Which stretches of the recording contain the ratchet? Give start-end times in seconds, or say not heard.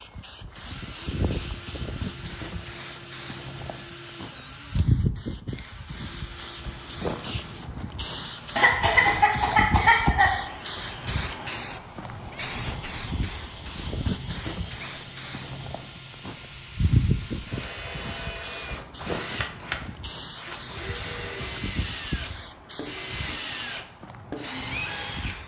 not heard.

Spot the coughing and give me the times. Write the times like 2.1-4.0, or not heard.
8.6-10.3.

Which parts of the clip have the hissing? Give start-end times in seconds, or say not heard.
0.0-25.4.